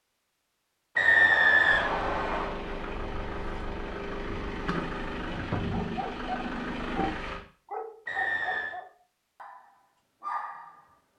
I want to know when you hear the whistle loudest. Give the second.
1 s.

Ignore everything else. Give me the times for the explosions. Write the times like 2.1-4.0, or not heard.
not heard.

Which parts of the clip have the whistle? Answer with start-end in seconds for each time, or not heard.
0.9-2.5, 8.1-8.8.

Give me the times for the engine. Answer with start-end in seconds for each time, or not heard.
1.6-7.4.